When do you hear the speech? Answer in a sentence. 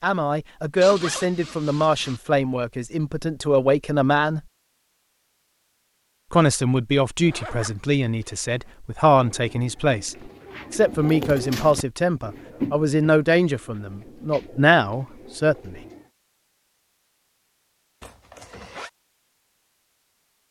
You can hear the speech from 0.0 to 4.4 s and from 6.3 to 15.8 s.